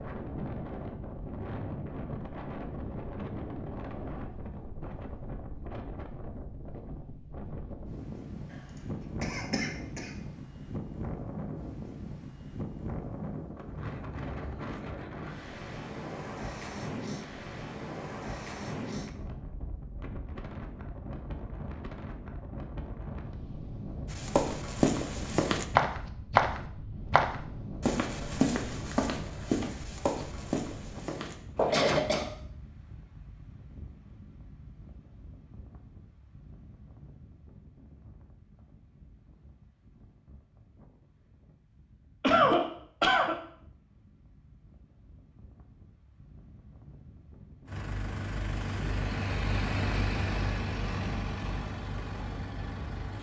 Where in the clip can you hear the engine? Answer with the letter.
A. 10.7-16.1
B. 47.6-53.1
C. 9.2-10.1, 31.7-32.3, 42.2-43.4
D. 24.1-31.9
B.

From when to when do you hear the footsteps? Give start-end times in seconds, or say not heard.
24.1-31.9.